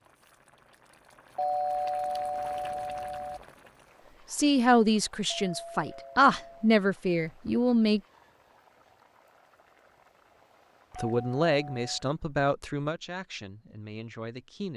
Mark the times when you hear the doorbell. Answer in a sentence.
You can hear the doorbell from 1.4 to 3.4 s, from 5.2 to 6.7 s and from 10.9 to 12.1 s.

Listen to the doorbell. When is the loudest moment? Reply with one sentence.
The volume of the doorbell peaks at 2 seconds.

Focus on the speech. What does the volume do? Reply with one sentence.
The loudness of the speech goes down.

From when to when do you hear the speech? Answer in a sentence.
You can hear the speech from 4.3 to 8.0 s and from 10.9 to 14.7 s.